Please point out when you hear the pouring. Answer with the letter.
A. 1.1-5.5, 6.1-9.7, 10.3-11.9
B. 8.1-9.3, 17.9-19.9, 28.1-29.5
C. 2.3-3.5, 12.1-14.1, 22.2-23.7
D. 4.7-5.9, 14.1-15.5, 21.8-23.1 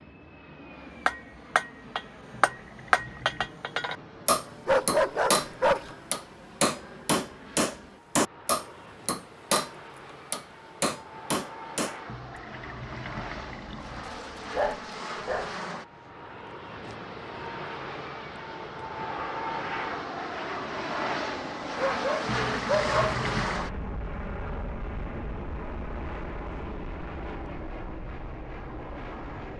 C.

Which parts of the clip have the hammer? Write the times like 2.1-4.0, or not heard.
1.1-5.5, 6.1-9.7, 10.3-11.9.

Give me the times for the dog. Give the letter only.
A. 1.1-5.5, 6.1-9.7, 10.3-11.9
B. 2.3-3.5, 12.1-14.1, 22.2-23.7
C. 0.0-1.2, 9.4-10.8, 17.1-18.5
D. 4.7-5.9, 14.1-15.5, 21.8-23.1
D.